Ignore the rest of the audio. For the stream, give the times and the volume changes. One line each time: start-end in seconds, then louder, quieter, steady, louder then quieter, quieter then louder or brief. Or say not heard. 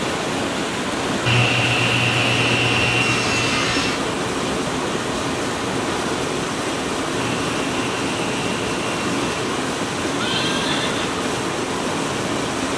0.0-12.7 steady.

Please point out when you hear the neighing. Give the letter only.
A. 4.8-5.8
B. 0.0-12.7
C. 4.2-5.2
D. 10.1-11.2
D.